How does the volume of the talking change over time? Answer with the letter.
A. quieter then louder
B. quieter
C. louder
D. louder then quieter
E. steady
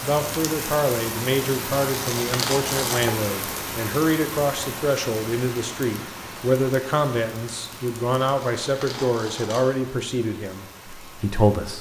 E.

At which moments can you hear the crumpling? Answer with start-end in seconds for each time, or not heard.
1.9-3.1, 8.2-9.8.